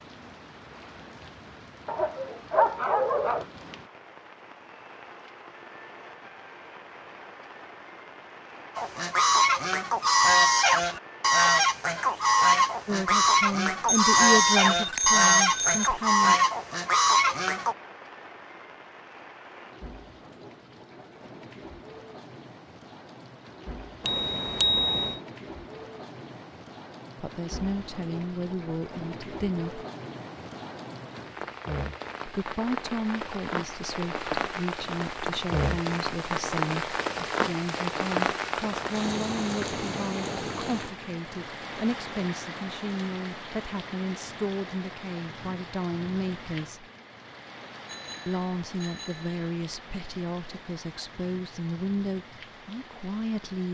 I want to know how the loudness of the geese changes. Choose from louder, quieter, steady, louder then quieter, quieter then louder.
steady.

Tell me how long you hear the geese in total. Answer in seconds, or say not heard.
9 s.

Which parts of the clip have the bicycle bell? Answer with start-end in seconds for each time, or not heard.
13.8-15.9, 24.1-25.1, 47.9-49.4.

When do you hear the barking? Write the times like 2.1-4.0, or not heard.
1.9-3.5.